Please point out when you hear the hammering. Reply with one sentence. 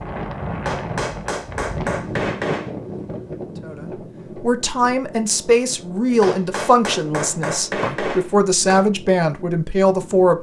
You can hear the hammering from 0.7 to 2.8 s and from 6.2 to 8.8 s.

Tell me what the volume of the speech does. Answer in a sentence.
The volume of the speech stays about the same.